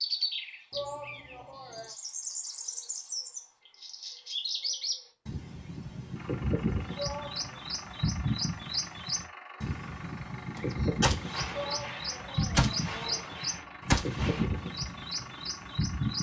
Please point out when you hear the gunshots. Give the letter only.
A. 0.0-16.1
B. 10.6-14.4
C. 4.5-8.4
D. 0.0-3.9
B.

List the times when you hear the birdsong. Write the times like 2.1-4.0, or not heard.
0.0-16.1.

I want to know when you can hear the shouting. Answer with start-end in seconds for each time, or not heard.
0.7-1.9, 7.0-7.6, 11.5-13.7.